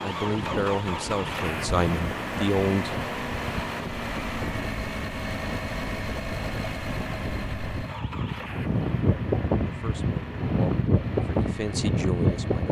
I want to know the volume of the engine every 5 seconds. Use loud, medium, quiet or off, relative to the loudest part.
loud, loud, medium.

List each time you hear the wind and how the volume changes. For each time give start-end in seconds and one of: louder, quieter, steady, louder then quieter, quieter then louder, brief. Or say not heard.
0.0-12.6 louder.